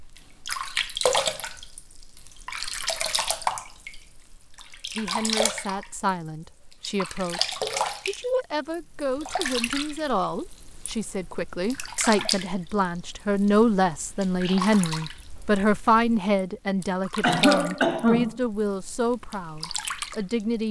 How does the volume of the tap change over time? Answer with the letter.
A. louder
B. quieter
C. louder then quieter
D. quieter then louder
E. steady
B.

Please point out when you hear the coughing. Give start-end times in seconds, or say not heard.
17.2-18.4.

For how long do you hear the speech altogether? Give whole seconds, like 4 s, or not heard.
16 s.